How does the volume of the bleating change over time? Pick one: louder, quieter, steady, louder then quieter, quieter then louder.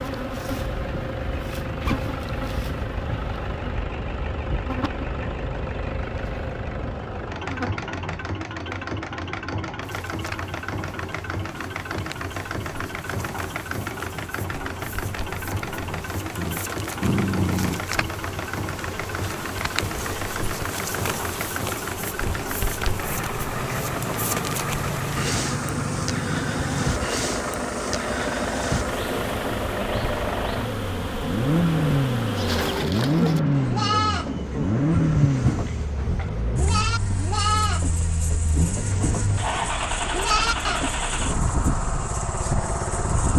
quieter then louder.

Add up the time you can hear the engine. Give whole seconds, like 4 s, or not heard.
43 s.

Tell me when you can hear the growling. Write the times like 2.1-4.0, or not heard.
16.4-17.9.